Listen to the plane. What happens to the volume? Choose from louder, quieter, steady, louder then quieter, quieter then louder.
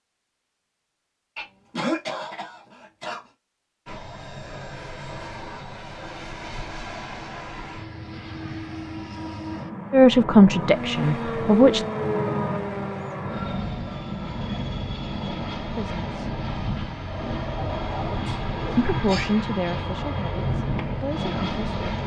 louder.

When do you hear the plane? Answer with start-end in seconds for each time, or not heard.
3.9-22.0.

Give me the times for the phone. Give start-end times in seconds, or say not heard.
not heard.